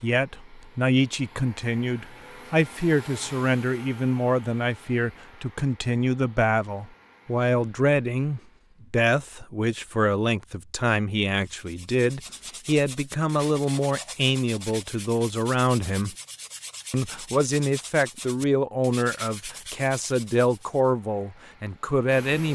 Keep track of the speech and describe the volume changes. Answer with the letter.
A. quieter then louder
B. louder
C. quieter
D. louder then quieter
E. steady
E.